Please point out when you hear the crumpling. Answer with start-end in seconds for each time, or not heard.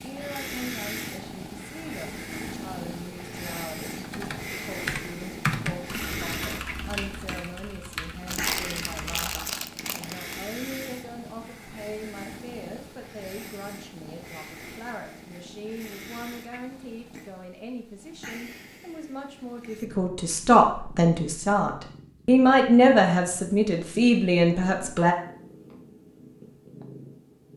8.2-10.3.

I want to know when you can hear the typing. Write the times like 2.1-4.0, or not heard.
4.0-9.3.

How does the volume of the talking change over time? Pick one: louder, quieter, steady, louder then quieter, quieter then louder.
louder.